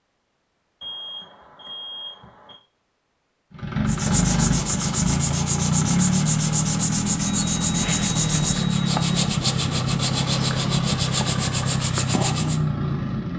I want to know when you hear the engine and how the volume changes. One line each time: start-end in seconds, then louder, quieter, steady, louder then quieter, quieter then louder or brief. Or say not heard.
3.5-13.3 steady.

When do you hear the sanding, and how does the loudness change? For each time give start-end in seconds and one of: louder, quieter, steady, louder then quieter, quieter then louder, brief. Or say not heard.
3.9-12.6 steady.